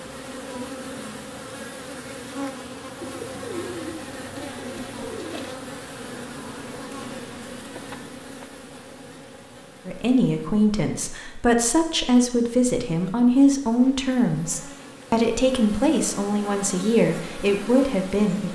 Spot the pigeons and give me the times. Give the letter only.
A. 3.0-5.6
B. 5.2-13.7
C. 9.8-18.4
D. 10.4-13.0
A.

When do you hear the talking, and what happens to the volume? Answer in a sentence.
The talking can be heard from 9.8 to 18.4 s, at a steady volume.